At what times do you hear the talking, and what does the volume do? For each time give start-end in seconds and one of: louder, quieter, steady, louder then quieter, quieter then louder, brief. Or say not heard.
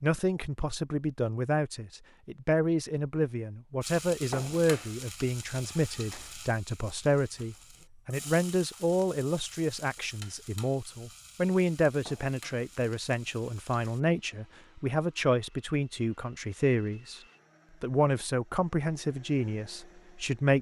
0.0-17.2 steady
17.8-20.5 brief.